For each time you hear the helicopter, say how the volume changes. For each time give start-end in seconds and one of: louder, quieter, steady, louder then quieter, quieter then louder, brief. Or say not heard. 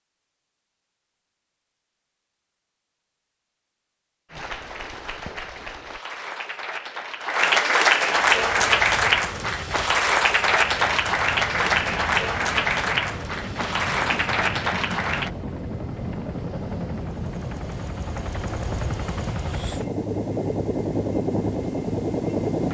8.2-22.6 louder.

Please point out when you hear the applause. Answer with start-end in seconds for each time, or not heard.
4.3-15.3.